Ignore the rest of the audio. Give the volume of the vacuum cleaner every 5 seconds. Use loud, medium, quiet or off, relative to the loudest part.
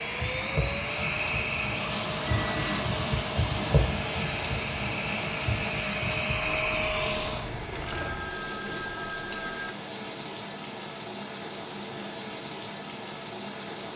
loud, loud, off.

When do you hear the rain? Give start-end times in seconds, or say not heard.
0.0-13.9.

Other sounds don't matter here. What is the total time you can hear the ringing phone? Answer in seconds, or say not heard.
3 s.